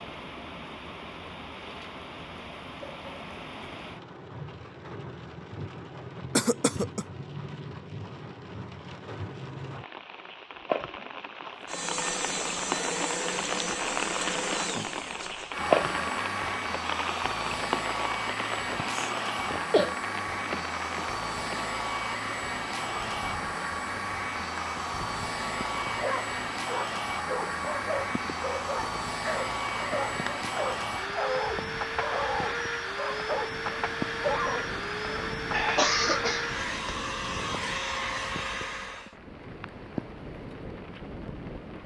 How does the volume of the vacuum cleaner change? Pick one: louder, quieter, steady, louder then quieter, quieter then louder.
steady.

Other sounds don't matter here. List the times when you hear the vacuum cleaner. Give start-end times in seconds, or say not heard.
11.6-39.1.